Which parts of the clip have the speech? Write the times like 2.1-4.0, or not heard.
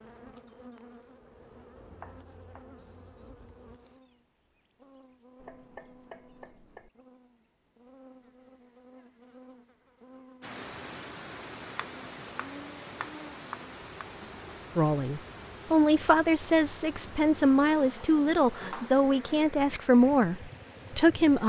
14.8-21.4.